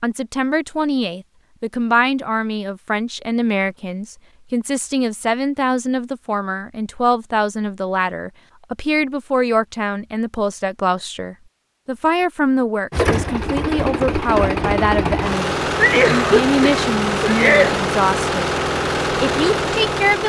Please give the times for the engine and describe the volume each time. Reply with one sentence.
You can hear the engine from 12.9 to 20.2 s, at a steady volume.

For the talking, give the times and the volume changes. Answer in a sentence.
You can hear the talking from 0.0 to 18.5 s, at a steady volume; and briefly from 19.1 to 20.2 s.